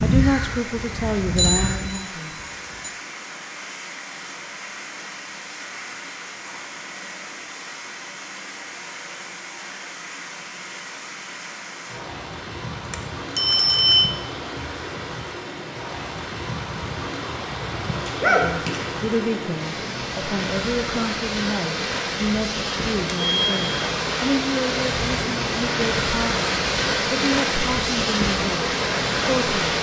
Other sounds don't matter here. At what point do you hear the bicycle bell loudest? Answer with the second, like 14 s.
14 s.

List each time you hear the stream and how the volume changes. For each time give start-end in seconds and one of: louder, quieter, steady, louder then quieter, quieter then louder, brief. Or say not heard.
0.0-29.7 louder.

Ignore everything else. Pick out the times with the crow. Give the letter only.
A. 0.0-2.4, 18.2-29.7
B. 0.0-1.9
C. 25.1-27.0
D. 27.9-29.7
B.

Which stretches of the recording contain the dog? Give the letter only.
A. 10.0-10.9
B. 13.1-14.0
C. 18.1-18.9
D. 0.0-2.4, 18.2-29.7
C.